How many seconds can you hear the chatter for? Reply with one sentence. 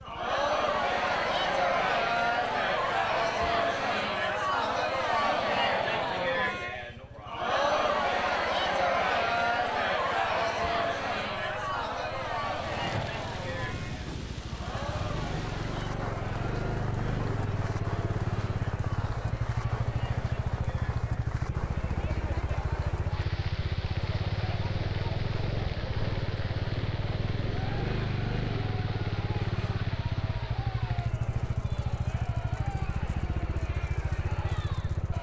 The chatter can be heard for 35 seconds in total.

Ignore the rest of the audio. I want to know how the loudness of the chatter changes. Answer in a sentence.
The loudness of the chatter goes down.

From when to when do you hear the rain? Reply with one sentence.
The rain can be heard from 12.4 to 35.1 s.